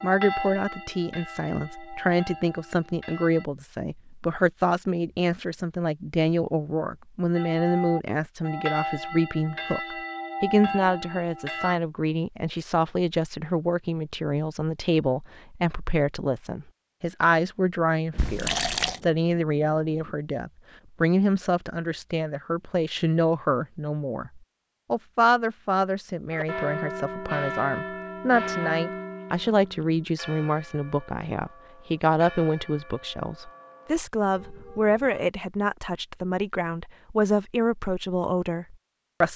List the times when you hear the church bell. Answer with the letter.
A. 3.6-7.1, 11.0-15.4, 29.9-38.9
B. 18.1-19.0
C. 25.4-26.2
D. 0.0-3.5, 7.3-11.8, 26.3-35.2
D.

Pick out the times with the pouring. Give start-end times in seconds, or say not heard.
18.1-19.0.